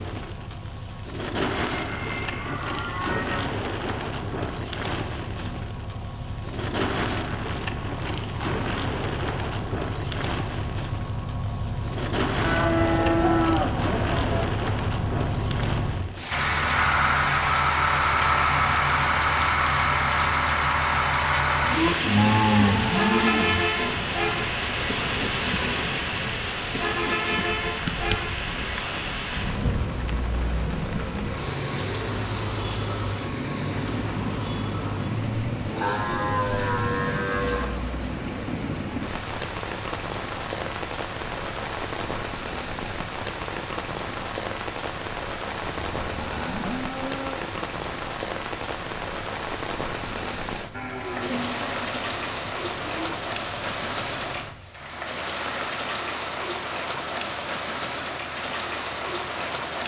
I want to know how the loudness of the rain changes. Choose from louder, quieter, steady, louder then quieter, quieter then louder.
steady.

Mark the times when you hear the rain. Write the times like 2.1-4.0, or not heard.
0.0-59.8.